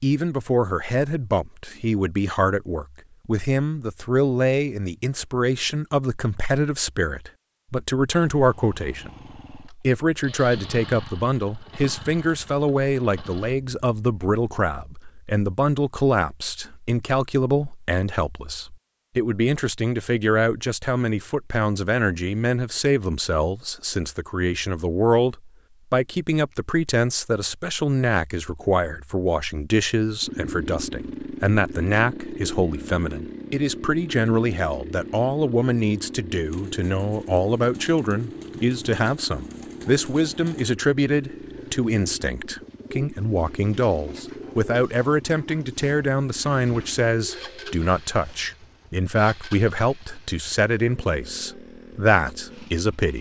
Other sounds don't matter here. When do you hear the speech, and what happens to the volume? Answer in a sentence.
You can hear the speech from 0.0 to 53.1 s, at a steady volume.